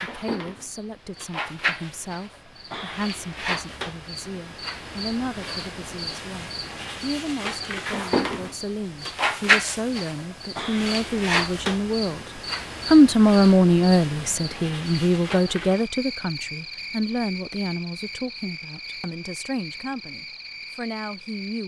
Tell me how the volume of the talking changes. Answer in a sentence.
The loudness of the talking goes up, then down.